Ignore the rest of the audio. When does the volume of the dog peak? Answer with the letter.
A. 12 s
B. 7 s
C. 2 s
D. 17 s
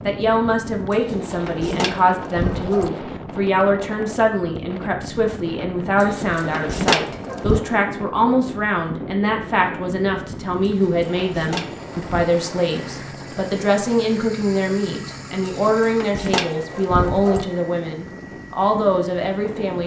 B.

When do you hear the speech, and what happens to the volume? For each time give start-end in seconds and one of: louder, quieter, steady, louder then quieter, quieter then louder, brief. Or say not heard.
0.0-19.8 steady.